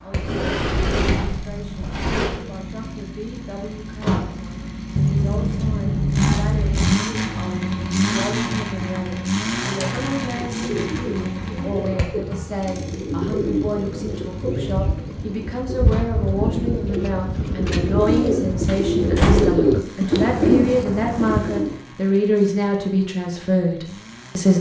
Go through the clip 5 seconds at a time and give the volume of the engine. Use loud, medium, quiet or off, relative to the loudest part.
medium, loud, medium, quiet, quiet.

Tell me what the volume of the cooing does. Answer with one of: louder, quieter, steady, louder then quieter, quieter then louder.
louder.